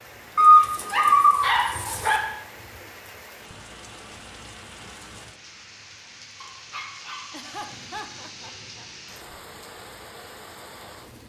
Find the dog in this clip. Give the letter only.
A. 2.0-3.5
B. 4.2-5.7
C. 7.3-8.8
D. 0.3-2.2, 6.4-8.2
D.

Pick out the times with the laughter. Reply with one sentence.
The laughter can be heard from 7.3 to 8.8 s.